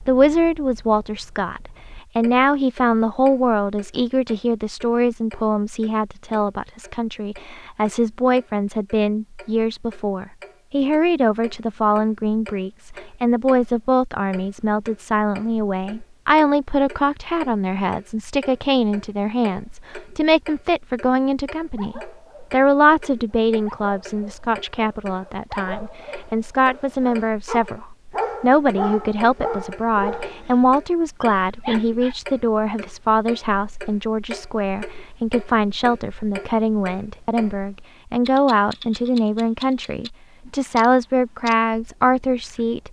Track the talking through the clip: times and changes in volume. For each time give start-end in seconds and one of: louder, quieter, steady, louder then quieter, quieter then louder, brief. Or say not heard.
0.1-42.8 steady.